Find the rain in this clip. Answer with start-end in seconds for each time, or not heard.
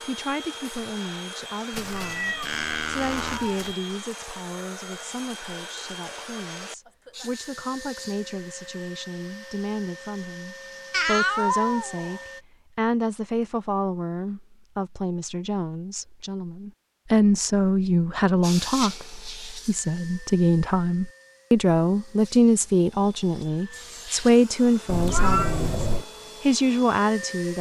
not heard.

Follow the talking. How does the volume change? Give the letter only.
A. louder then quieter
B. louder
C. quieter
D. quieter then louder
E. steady
B.